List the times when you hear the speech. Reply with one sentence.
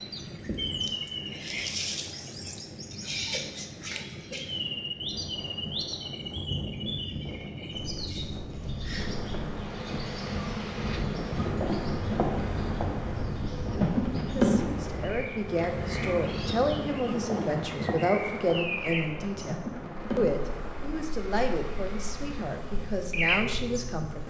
The speech can be heard from 14.3 to 24.2 s.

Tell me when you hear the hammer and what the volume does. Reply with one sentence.
You can't hear the hammer here.